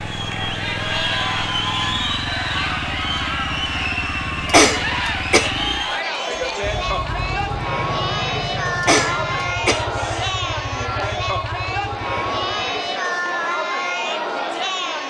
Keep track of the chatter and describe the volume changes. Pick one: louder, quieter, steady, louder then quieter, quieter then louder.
steady.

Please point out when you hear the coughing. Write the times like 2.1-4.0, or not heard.
4.5-5.5, 8.8-10.3.